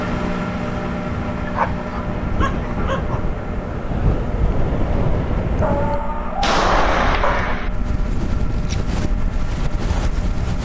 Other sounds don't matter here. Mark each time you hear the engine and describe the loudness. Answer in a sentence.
The engine can be heard from 0.0 to 10.6 s, getting quieter.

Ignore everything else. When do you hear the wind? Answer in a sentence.
You can hear the wind from 0.0 to 10.6 s.